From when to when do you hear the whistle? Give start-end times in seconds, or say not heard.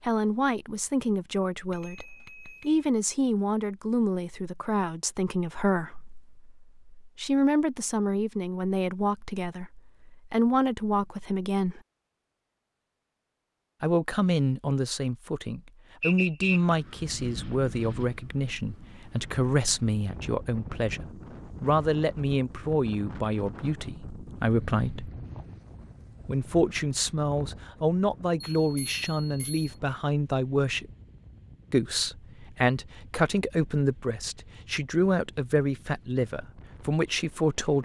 16.0-16.8.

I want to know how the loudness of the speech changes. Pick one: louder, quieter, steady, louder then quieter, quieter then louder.
steady.